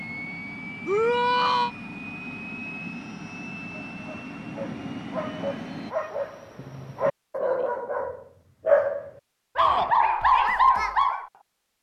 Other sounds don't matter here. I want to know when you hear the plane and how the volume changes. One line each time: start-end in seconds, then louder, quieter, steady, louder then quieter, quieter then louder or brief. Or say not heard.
0.0-6.0 steady.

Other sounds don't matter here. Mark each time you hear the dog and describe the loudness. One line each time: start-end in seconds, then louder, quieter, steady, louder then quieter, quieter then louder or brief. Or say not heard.
3.9-11.2 louder.